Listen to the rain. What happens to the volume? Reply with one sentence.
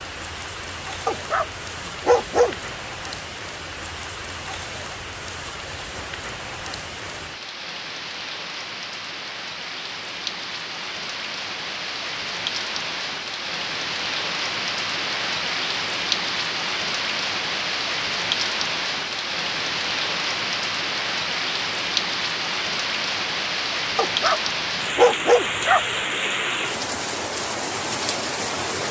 The volume of the rain goes up.